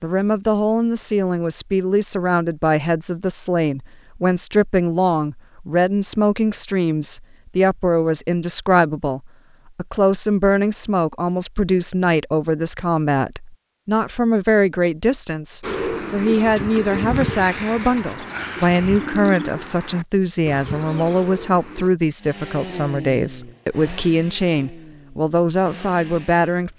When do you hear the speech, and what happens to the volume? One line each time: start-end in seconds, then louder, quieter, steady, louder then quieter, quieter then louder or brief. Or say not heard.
0.0-26.7 steady.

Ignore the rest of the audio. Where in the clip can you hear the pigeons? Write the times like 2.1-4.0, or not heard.
15.6-21.9.